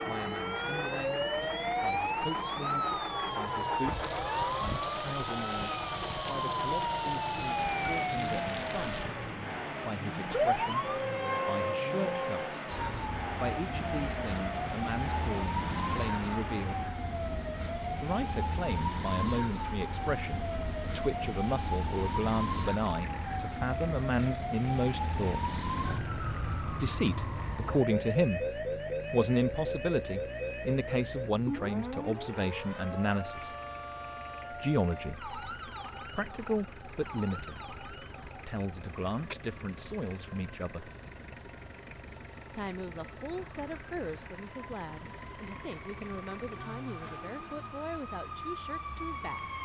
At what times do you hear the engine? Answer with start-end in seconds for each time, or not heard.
0.0-49.5.